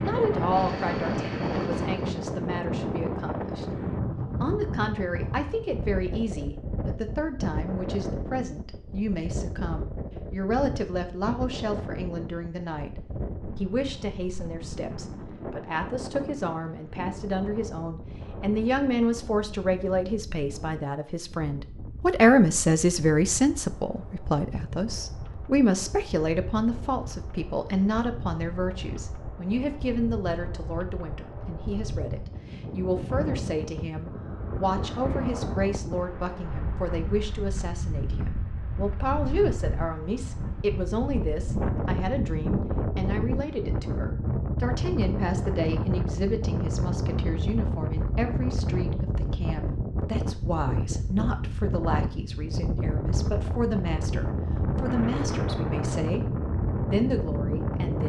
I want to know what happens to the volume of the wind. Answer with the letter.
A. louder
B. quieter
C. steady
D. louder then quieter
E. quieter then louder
E.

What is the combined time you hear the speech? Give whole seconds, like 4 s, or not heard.
57 s.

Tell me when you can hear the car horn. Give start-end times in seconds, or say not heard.
not heard.